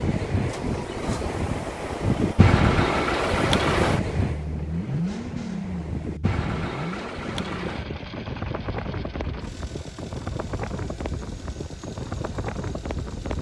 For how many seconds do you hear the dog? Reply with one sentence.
You can't hear the dog here.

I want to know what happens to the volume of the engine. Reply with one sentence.
The volume of the engine goes up, then down.